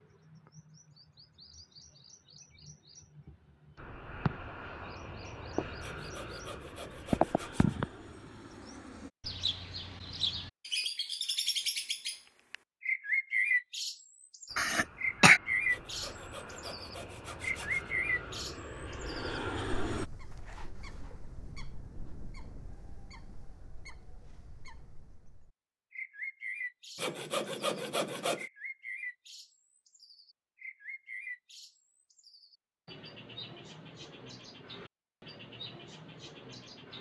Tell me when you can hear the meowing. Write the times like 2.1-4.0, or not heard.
not heard.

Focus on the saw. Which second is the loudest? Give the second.
28 s.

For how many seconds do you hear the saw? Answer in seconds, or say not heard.
6 s.